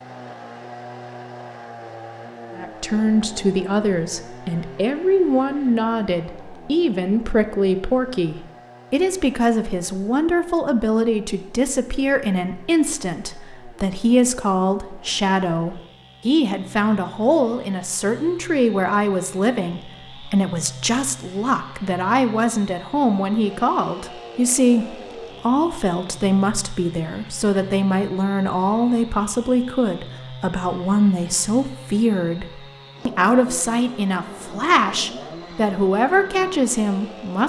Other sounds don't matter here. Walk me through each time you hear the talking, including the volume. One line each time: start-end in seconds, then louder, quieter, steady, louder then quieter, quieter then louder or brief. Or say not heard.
2.5-37.4 steady.